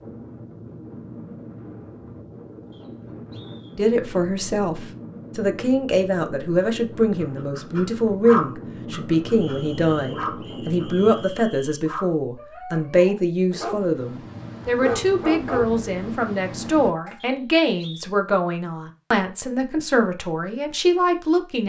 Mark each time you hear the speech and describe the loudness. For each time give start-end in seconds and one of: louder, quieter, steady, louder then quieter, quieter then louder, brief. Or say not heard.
3.8-21.6 steady.